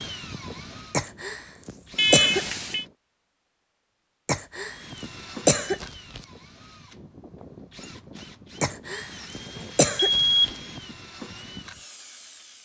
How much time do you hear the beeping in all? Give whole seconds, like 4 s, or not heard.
2 s.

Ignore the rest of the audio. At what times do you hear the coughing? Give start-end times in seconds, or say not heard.
0.9-2.5, 4.2-6.2, 8.6-10.5.